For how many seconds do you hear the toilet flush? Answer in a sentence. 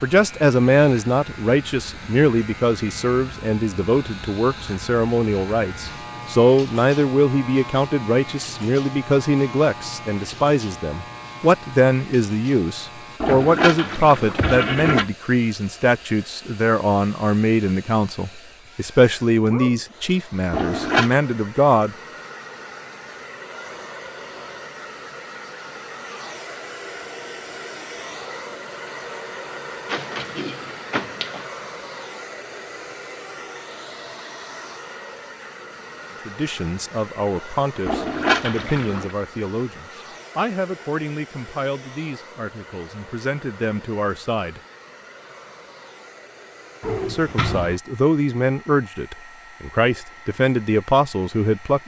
The toilet flush can be heard for 4 seconds in total.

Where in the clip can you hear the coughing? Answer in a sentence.
The coughing can't be heard in this clip.